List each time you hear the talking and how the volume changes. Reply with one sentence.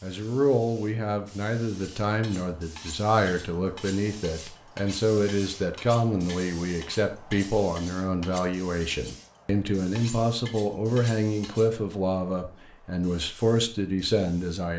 The talking can be heard from 0.0 to 14.7 s, at a steady volume.